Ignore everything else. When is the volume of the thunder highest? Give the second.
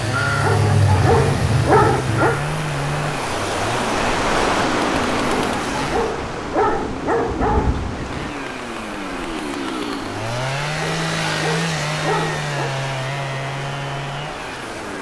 8 s.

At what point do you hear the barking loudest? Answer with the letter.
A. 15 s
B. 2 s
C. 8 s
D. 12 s
B.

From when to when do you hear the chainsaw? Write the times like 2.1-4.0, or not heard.
0.0-6.2, 8.0-14.9.